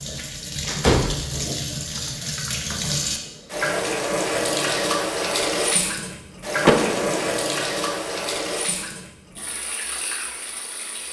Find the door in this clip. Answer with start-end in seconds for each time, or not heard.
0.7-1.2, 6.7-7.3.